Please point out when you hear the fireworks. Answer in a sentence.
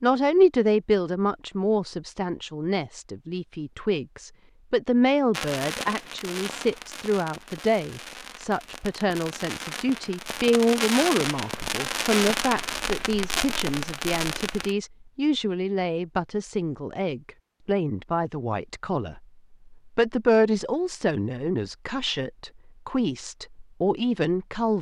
You can hear the fireworks from 5.3 to 14.8 s.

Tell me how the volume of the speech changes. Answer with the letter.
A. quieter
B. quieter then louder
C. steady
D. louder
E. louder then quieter
C.